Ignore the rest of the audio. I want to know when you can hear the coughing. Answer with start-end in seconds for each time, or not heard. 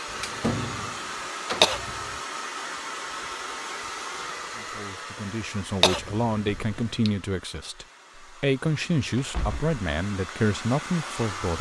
1.6-2.0, 5.8-7.1.